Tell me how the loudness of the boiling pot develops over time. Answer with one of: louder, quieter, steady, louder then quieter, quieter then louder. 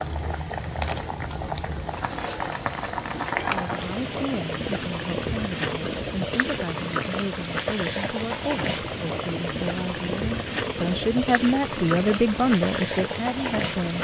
steady.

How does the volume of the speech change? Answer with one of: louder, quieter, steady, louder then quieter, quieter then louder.
louder.